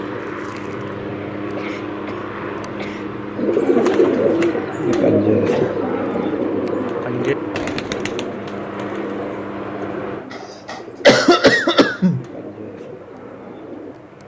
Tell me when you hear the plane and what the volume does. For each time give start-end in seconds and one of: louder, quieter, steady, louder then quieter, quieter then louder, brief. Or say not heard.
0.0-14.2 quieter.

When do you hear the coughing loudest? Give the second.
11 s.